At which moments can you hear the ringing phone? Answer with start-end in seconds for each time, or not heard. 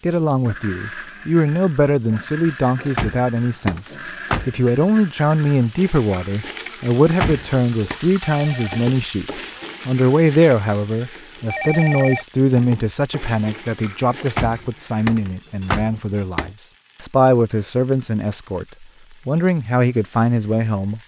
8.2-8.9, 11.5-12.2.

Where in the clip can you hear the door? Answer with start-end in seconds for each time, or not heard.
2.8-4.6, 7.0-8.0, 14.2-16.5.